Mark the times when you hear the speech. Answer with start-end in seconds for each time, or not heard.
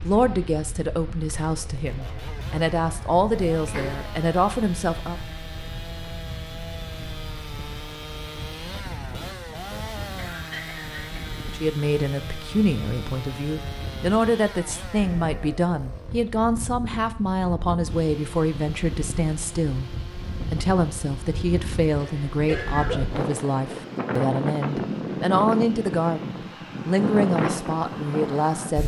0.0-5.2, 11.5-28.8.